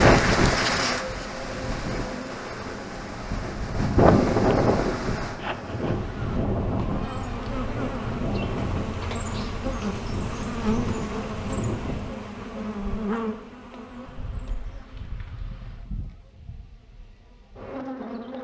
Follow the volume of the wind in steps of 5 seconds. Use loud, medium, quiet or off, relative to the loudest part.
loud, medium, medium, off.